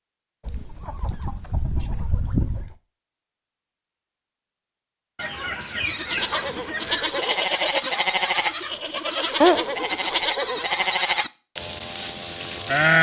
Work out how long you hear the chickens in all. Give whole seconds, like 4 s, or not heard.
6 s.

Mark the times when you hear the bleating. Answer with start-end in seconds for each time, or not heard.
5.8-12.9.